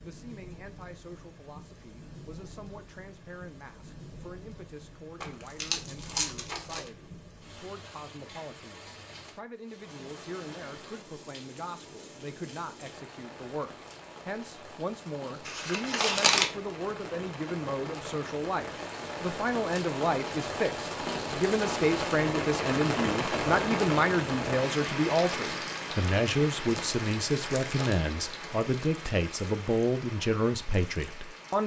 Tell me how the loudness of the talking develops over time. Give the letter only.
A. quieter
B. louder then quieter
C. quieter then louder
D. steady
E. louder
E.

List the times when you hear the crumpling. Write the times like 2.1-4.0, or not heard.
5.2-6.9, 15.4-16.5, 26.7-27.9.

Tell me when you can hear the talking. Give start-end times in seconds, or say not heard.
0.0-31.6.